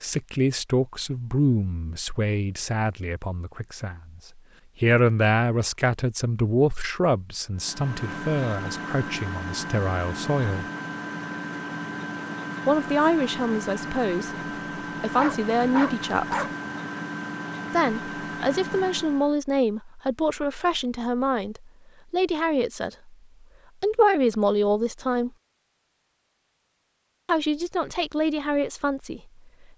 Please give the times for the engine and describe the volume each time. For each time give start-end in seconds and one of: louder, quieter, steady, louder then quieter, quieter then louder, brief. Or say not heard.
7.5-19.4 steady.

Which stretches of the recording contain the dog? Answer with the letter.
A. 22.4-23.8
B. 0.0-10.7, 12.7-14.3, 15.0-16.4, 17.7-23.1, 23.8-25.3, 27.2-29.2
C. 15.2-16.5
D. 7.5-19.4
C.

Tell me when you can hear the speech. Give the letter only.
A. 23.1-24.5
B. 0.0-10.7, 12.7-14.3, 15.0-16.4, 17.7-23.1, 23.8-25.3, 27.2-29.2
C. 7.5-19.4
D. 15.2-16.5
B.